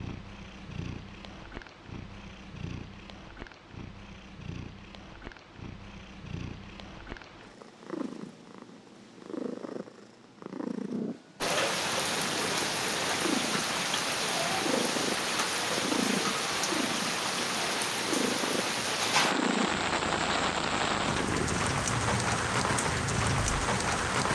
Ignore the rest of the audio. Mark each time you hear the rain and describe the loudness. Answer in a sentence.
You can hear the rain from 11.4 to 24.2 s, at a steady volume.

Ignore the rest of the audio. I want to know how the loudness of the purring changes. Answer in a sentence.
The volume of the purring goes up.